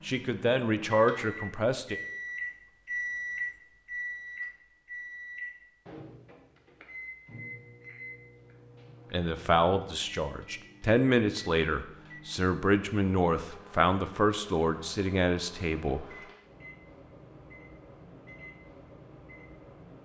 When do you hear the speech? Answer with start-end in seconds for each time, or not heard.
0.1-2.0, 9.1-16.1.